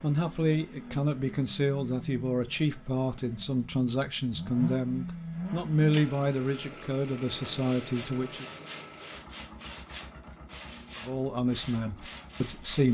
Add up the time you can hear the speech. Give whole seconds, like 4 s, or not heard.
10 s.